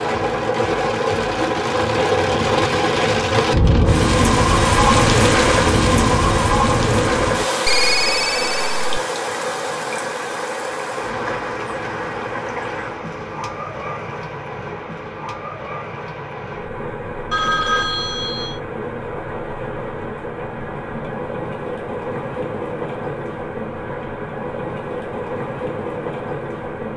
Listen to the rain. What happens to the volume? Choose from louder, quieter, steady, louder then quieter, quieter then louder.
quieter.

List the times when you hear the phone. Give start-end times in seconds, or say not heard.
7.7-8.8, 17.3-18.6.